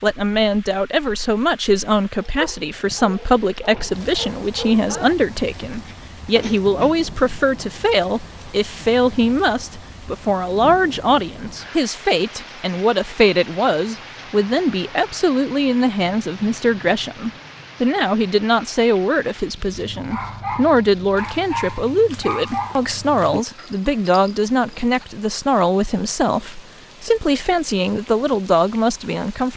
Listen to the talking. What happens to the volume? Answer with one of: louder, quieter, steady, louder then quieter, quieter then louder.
steady.